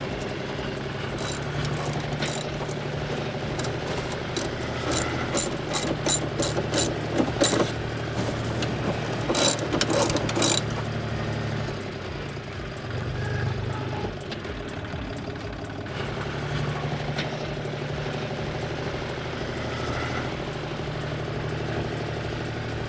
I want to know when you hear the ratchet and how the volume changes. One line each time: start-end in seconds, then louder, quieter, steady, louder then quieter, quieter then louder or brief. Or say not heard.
1.0-10.8 louder.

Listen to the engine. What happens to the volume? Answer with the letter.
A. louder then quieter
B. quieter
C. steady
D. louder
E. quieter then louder
C.